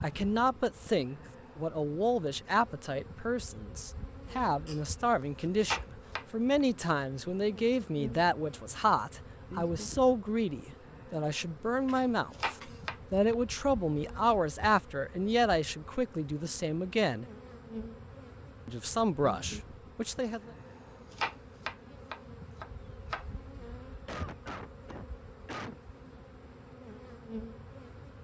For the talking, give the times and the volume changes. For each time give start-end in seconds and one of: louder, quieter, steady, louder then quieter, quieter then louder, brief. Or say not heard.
0.0-17.2 steady
18.6-20.5 brief.